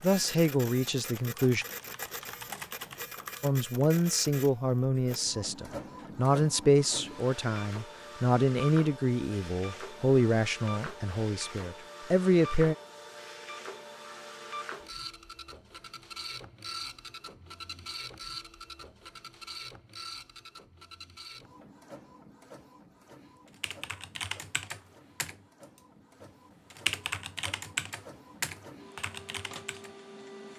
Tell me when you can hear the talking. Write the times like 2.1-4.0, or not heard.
0.0-1.6, 3.4-12.8.